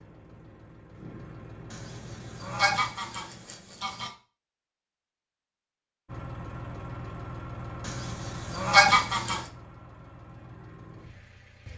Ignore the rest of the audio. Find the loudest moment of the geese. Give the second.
9 s.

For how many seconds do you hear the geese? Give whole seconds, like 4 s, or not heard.
4 s.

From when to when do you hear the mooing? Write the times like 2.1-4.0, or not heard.
not heard.